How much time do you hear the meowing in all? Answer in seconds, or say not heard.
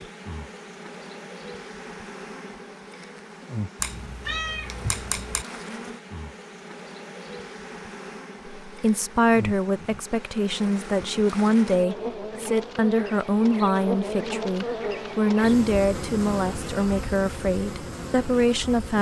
2 s.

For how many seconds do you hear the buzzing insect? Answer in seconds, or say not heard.
19 s.